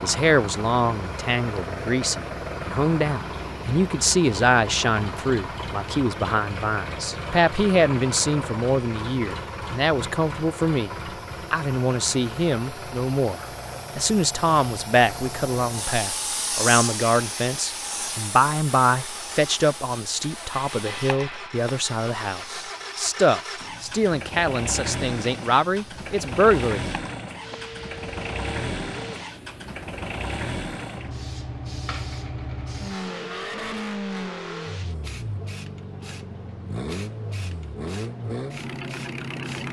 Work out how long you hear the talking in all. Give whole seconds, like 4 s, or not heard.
26 s.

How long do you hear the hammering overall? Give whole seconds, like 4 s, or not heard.
not heard.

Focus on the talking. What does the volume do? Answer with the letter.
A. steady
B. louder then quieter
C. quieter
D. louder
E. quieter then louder
A.